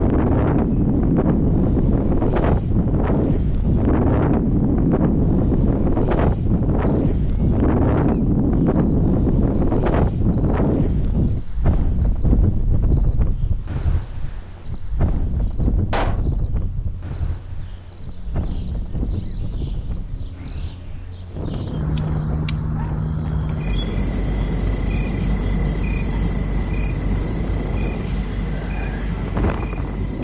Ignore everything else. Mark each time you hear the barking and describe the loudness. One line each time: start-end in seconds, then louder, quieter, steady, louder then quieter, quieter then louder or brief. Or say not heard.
not heard.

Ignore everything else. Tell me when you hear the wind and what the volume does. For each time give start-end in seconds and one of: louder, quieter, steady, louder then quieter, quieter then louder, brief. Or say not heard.
0.0-30.1 quieter.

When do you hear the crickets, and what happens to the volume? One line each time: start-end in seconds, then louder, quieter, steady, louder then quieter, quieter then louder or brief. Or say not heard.
0.0-30.1 louder.